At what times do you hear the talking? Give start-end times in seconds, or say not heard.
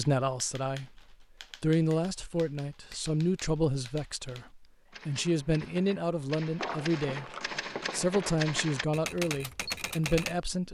0.0-1.0, 1.6-7.3, 7.9-10.6.